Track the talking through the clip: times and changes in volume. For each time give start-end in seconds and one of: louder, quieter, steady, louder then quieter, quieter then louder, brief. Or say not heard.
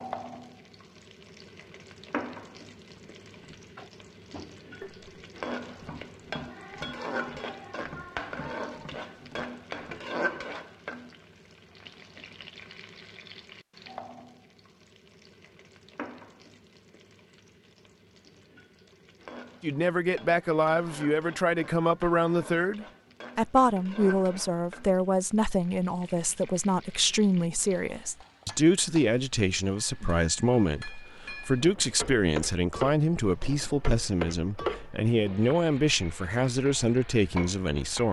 19.6-38.0 steady.